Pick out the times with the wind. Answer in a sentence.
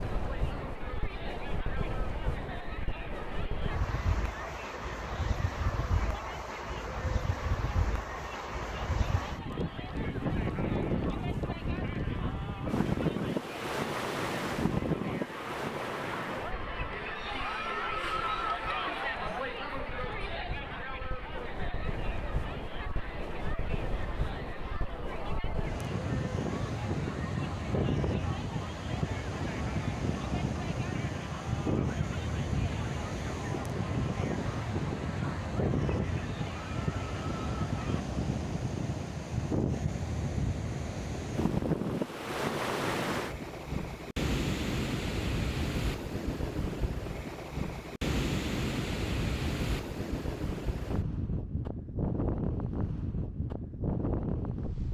You can hear the wind from 0.0 to 54.8 s.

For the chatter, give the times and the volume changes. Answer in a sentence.
You can hear the chatter from 0.0 to 38.0 s, getting louder then quieter.